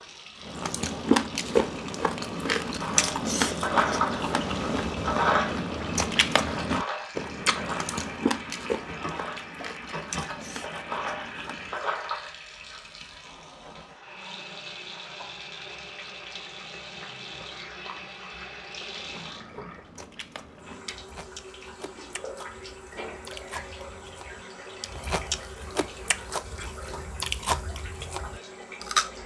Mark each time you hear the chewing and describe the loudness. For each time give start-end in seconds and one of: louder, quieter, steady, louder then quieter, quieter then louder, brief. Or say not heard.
0.5-11.8 quieter
18.9-29.1 louder.